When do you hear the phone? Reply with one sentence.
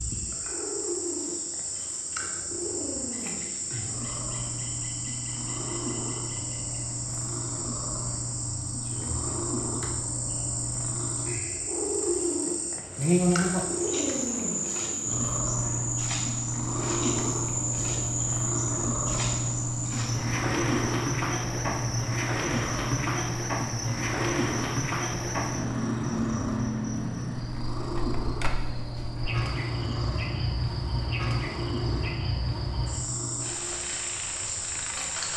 You can hear the phone from 28.1 to 28.6 s.